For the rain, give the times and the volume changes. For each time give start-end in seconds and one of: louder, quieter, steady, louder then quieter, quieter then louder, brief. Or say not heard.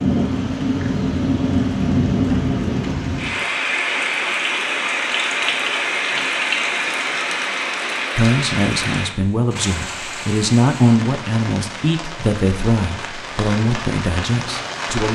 0.0-15.0 quieter.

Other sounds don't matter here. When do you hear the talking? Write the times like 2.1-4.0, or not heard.
8.2-15.0.